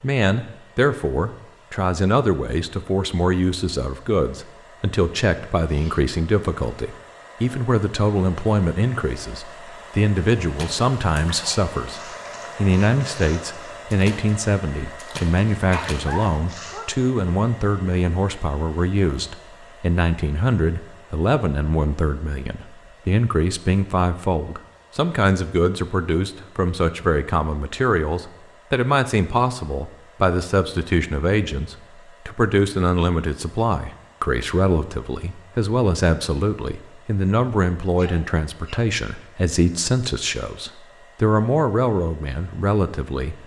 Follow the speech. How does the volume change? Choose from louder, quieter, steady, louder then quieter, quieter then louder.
steady.